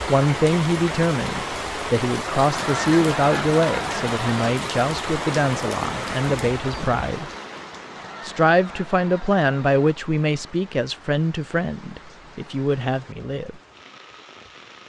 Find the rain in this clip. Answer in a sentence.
The rain can be heard from 0.0 to 14.8 s.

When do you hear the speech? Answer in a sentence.
The speech can be heard from 0.1 to 7.3 s and from 8.2 to 13.6 s.